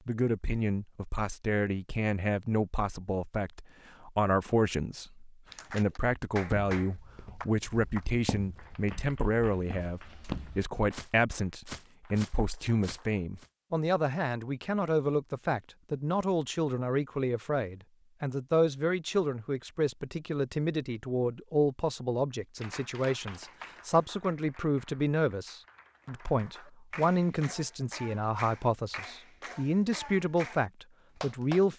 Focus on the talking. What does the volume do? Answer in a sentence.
The loudness of the talking stays about the same.